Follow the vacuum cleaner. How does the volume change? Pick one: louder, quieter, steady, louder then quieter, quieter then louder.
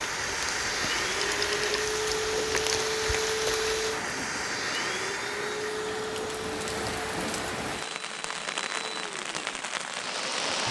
quieter.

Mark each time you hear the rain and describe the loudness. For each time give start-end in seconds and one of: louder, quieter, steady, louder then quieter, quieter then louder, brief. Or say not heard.
0.0-10.6 quieter then louder.